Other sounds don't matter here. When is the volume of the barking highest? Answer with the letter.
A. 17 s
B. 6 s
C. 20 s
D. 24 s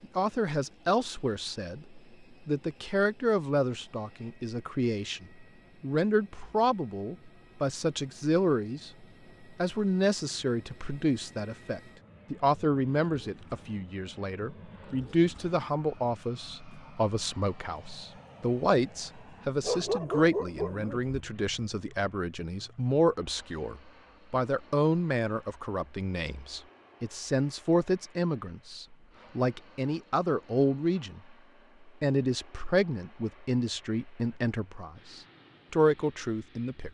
C.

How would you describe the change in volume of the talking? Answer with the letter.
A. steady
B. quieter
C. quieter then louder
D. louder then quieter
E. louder
A.